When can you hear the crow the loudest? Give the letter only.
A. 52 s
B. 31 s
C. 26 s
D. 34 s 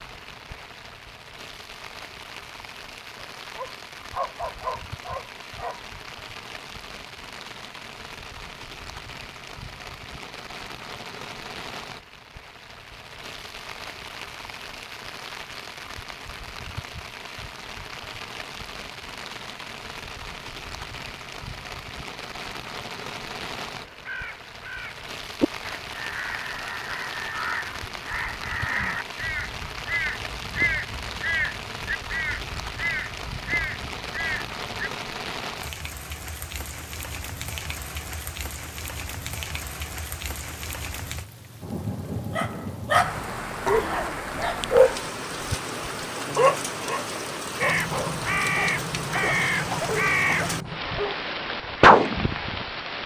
A.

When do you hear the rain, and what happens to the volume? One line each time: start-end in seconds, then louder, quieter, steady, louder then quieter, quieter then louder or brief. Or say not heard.
0.0-53.0 louder.